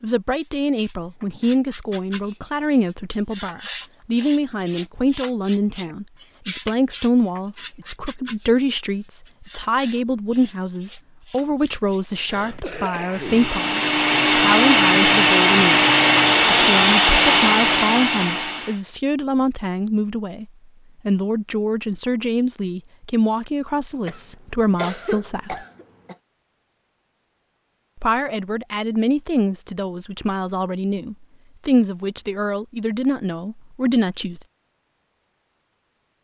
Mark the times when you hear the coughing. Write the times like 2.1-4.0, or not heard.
12.2-13.6, 24.1-26.1.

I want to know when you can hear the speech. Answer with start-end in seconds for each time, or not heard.
0.0-15.8, 16.5-25.6, 27.9-34.4.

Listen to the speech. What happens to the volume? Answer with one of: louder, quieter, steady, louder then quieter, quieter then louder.
steady.